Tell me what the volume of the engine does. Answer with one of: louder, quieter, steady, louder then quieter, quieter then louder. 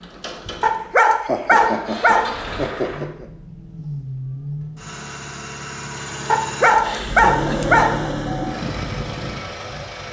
louder.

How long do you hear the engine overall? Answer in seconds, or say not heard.
10 s.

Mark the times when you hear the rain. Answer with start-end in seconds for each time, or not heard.
not heard.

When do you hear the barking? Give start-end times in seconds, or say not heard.
0.6-2.3, 6.3-8.0.